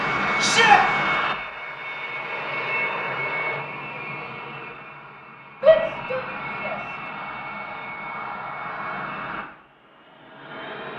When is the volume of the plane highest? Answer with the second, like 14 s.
1 s.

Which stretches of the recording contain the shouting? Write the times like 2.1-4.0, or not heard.
0.4-0.8, 5.6-6.8.